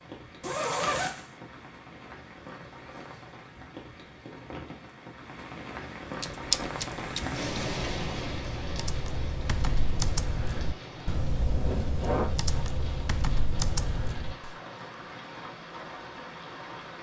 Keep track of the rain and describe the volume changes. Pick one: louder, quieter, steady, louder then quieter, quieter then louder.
louder then quieter.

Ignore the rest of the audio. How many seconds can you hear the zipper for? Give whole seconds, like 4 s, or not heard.
2 s.